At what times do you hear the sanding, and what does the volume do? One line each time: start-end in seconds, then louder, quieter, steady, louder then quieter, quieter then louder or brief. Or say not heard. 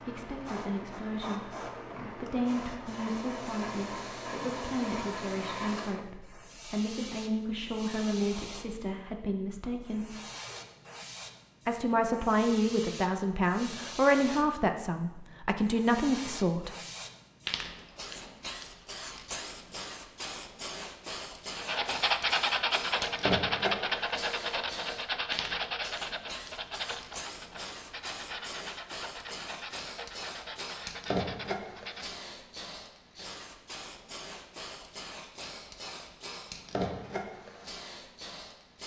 21.6-32.2 quieter.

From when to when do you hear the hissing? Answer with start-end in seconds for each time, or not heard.
0.0-14.6, 15.6-38.8.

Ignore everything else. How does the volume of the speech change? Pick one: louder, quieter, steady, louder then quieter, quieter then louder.
louder.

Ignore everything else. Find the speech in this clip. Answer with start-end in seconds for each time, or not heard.
0.0-10.2, 11.7-16.7.